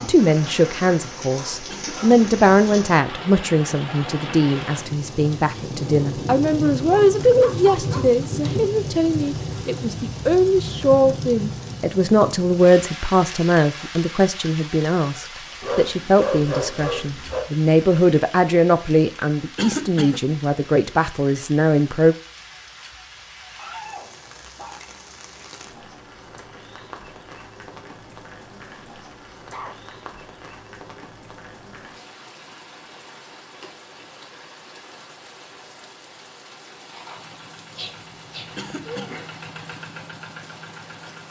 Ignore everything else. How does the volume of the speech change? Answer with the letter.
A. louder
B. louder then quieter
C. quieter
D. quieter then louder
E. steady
E.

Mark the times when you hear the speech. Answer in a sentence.
You can hear the speech from 0.0 to 22.1 s.